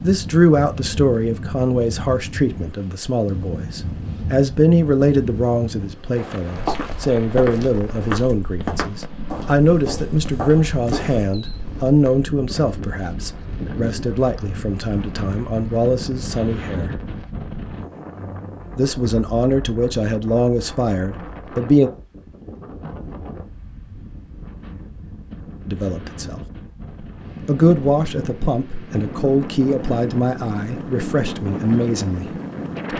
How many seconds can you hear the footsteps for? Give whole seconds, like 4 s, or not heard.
5 s.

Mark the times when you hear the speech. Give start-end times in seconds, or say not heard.
0.0-16.9, 18.8-21.9, 25.6-26.4, 27.4-32.3.